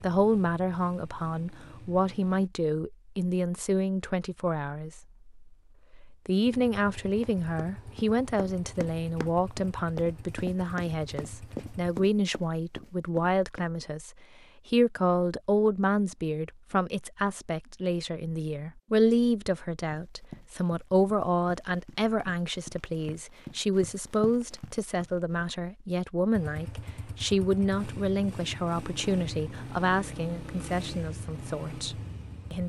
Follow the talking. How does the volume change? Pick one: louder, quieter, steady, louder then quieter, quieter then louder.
steady.